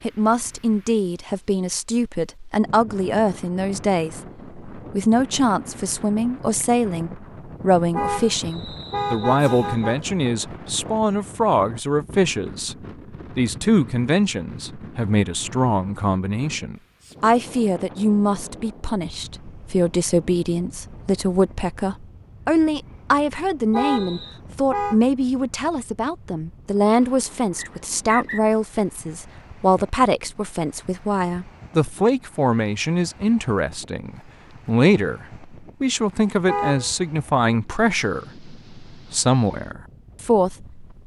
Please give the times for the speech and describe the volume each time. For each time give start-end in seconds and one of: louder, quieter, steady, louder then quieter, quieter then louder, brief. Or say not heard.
0.0-12.8 steady
13.3-40.8 steady.